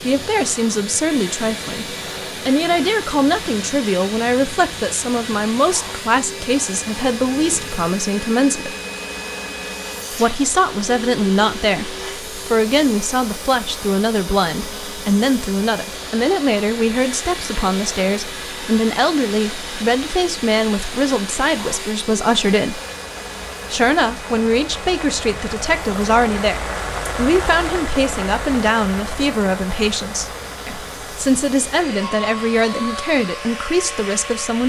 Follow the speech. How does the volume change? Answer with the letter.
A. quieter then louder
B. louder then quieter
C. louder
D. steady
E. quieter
D.